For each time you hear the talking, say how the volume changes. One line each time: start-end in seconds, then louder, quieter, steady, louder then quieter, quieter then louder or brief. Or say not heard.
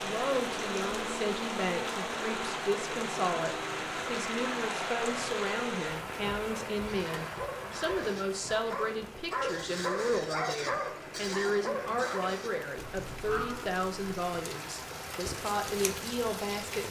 0.0-16.8 steady.